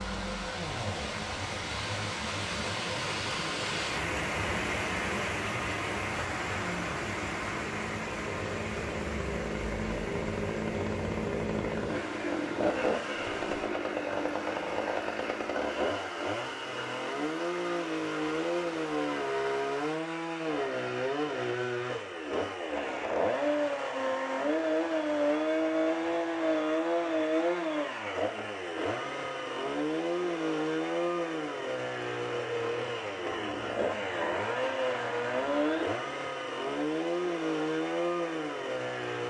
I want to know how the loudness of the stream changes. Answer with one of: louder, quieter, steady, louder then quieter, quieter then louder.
quieter.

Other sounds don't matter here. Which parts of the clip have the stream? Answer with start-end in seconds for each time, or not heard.
0.0-20.0.